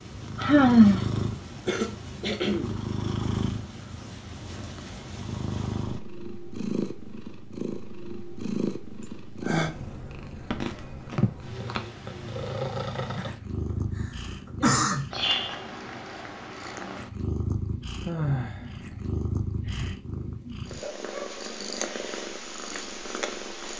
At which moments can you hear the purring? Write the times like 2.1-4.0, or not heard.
0.0-23.7.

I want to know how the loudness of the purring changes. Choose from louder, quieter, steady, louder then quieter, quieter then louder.
steady.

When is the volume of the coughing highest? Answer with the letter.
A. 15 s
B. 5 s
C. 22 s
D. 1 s
A.